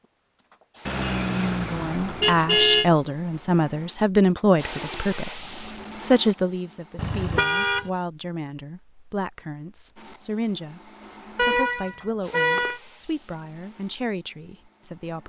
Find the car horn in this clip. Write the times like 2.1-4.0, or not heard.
0.8-2.9, 7.0-7.9, 11.3-12.8.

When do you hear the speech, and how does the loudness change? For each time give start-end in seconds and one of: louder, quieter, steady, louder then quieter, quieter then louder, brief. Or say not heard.
1.7-15.2 quieter.